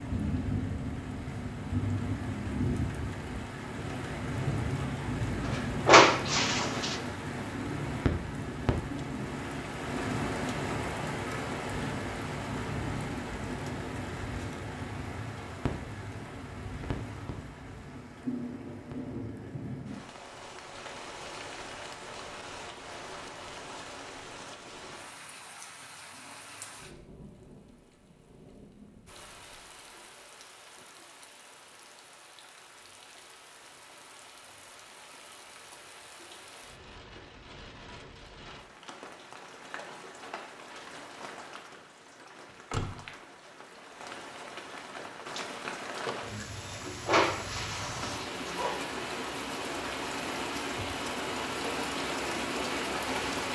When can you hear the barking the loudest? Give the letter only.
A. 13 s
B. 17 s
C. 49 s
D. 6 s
D.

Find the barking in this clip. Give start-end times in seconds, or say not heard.
5.5-7.0, 46.6-48.8.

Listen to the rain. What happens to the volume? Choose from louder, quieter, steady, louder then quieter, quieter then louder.
quieter then louder.